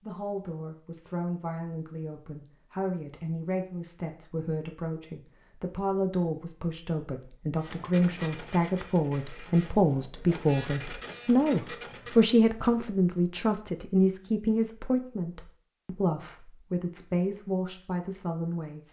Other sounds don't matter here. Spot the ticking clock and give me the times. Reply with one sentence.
The ticking clock can't be heard in this clip.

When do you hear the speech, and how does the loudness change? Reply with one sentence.
The speech can be heard from 0.0 to 18.8 s, getting louder then quieter.